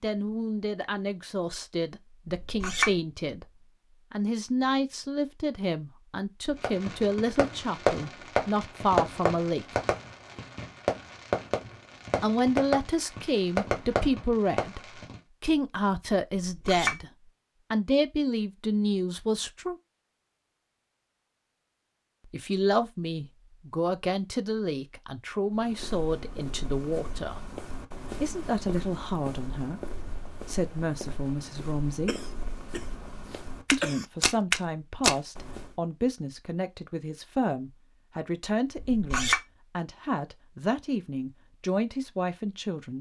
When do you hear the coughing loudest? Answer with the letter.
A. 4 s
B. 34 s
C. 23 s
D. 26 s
B.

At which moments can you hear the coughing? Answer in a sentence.
The coughing can be heard from 32.0 to 34.0 s.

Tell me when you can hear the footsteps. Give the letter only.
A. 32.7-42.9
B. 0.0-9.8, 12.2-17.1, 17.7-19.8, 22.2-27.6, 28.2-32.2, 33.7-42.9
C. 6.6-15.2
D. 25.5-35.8
D.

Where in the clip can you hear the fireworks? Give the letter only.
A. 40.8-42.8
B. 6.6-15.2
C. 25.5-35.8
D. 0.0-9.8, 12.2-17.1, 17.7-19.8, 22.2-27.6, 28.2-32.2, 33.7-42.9
B.